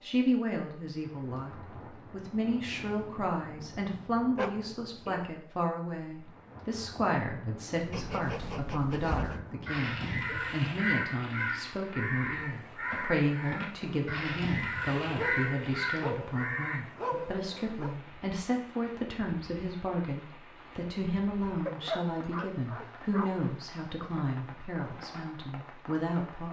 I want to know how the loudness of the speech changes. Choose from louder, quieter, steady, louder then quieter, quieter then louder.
steady.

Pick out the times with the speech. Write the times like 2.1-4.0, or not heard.
0.0-26.4.